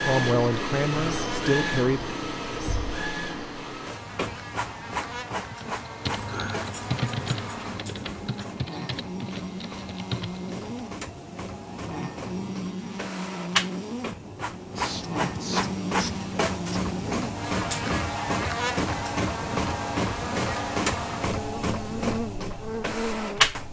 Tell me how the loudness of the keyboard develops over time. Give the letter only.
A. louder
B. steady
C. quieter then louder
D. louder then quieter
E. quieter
D.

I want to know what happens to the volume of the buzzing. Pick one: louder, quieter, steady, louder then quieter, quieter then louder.
louder.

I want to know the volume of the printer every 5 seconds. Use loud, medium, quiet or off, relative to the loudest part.
loud, medium, medium, loud, loud.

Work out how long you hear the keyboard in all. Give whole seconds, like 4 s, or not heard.
5 s.